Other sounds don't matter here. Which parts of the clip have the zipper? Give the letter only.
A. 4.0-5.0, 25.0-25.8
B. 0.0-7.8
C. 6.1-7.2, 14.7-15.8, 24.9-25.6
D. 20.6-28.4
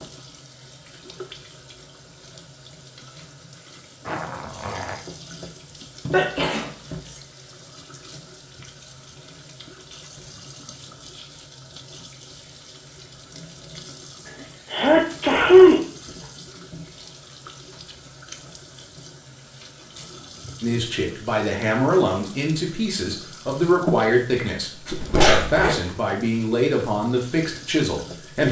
A.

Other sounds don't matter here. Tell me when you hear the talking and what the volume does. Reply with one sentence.
You can hear the talking from 20.6 to 28.4 s, at a steady volume.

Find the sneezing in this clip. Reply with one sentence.
The sneezing can be heard from 6.1 to 7.2 s, from 14.7 to 15.8 s and from 24.9 to 25.6 s.